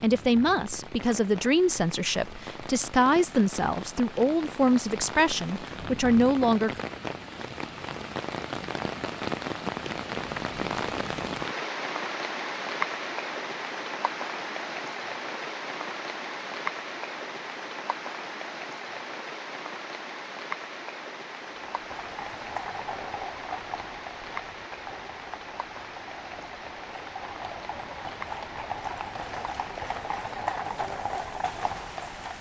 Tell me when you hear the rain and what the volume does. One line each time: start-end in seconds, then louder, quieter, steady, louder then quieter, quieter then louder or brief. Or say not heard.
0.0-32.3 louder then quieter.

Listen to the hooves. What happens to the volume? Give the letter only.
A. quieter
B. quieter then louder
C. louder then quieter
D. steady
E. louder
B.